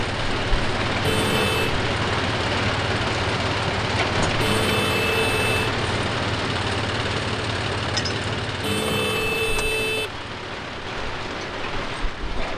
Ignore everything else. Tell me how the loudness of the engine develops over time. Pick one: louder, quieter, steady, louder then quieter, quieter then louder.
quieter.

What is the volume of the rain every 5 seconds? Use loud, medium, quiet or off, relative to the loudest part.
loud, loud, medium.